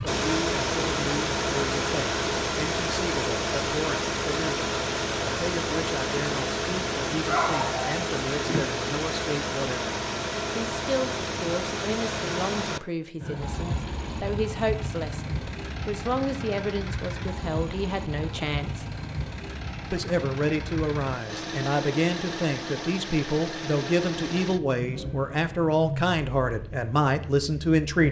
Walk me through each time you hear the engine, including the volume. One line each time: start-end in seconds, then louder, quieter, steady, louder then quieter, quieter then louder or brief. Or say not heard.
0.0-28.0 quieter.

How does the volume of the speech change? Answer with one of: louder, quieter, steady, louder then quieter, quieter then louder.
louder.